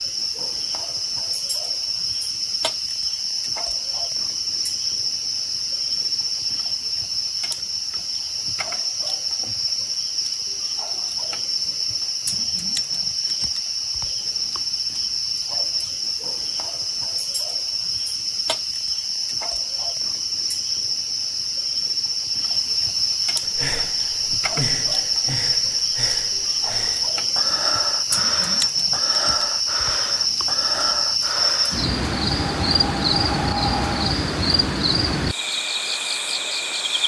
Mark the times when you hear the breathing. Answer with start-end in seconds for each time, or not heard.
23.4-34.1.